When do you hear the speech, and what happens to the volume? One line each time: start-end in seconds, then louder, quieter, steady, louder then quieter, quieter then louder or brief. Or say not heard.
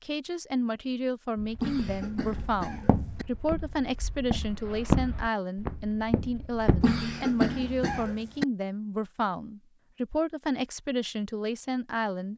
0.0-12.3 steady.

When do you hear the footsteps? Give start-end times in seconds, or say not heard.
1.4-7.0.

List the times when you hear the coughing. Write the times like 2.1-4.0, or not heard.
1.6-3.2, 6.8-8.4.